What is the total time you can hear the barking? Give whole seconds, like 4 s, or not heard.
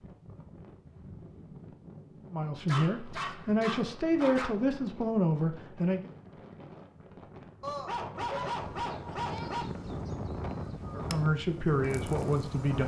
4 s.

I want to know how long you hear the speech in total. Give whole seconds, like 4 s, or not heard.
6 s.